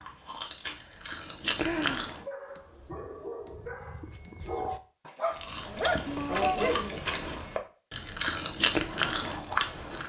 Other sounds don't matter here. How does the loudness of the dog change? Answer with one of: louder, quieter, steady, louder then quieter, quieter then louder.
louder.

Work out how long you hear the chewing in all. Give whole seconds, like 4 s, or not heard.
7 s.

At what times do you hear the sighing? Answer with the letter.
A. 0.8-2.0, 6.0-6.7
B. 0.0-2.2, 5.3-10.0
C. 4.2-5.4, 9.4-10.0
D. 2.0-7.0
A.